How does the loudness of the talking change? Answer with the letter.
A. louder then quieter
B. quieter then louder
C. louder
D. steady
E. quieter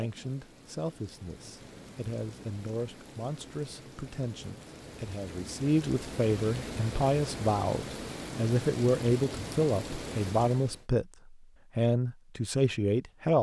C.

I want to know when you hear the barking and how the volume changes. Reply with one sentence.
The barking can't be heard in this clip.